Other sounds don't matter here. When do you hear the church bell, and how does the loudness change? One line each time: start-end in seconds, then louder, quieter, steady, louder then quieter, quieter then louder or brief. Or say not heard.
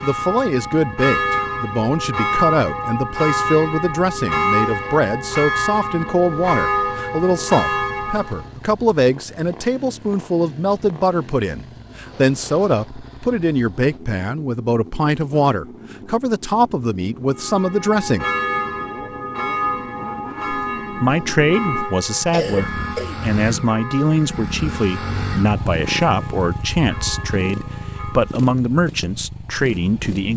0.0-8.5 steady
17.4-28.4 quieter.